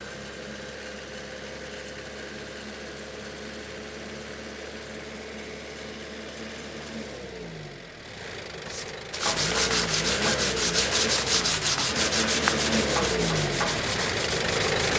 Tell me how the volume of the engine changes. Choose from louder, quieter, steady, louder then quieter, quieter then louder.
louder.